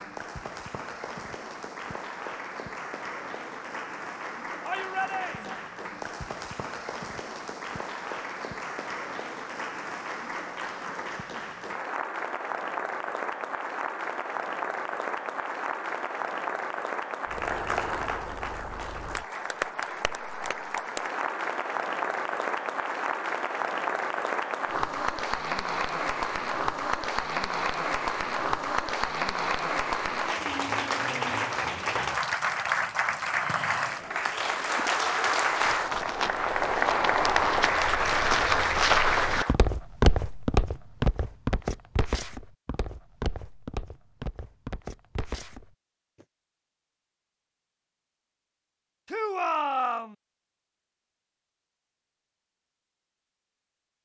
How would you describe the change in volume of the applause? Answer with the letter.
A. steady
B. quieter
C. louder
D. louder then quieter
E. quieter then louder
C.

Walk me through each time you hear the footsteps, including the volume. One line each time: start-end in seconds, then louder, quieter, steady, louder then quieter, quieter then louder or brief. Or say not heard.
35.7-46.2 louder then quieter.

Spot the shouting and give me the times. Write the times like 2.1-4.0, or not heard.
4.7-5.7, 49.0-50.1.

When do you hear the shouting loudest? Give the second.
50 s.